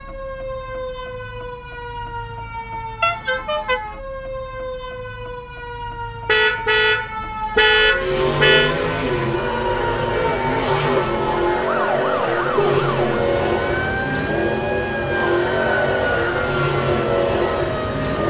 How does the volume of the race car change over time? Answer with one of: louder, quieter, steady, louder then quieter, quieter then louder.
steady.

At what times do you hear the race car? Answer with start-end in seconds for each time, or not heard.
7.9-18.2.